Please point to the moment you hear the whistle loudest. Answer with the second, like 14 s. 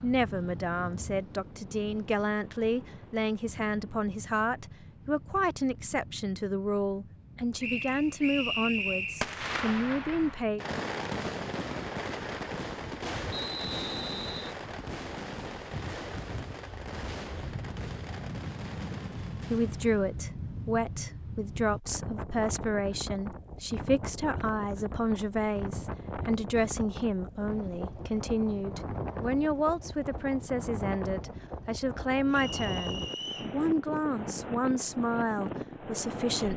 9 s.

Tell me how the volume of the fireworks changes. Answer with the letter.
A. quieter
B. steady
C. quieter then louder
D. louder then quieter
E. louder
A.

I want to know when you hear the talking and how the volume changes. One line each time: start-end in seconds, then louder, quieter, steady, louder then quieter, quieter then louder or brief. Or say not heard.
0.0-10.6 steady
19.5-36.5 steady.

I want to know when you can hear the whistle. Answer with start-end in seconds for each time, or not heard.
7.6-9.2, 13.3-14.6, 32.3-33.5.